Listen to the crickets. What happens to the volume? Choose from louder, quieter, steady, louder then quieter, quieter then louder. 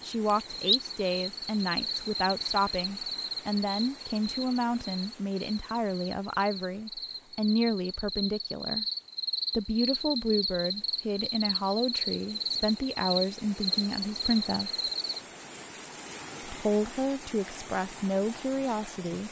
quieter then louder.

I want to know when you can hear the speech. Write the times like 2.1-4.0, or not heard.
0.1-8.8, 9.5-14.8, 16.4-19.2.